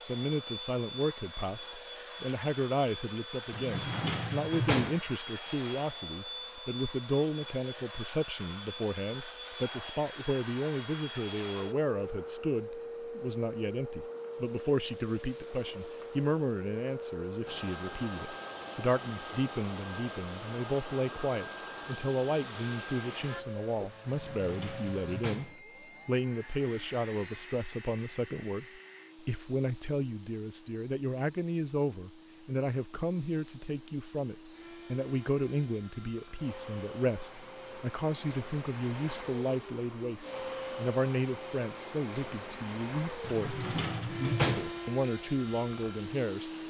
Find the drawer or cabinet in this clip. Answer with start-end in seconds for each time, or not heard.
3.5-5.0, 24.1-25.6, 43.2-44.8.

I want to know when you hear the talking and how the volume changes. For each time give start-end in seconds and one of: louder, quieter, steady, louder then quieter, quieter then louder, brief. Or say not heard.
0.0-46.5 steady.